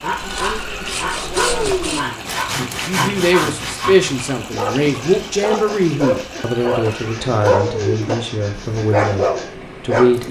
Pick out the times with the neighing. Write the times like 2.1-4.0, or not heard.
0.2-2.0, 6.3-8.2.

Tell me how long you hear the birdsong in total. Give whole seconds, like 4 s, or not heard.
not heard.